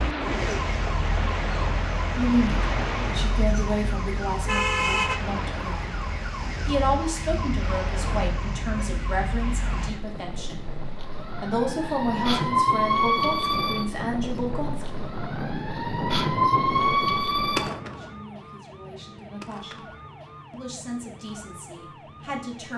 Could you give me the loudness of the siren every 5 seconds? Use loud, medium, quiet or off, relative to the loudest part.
loud, medium, loud, loud, quiet.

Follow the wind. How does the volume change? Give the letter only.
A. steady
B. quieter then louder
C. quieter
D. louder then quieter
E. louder
B.